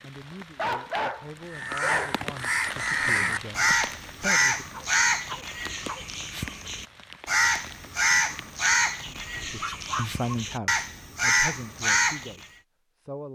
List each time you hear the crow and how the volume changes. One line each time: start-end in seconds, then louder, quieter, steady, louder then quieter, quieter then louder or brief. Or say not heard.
1.5-12.4 steady.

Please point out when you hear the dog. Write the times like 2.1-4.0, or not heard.
0.6-2.2, 4.7-6.0, 9.1-10.1.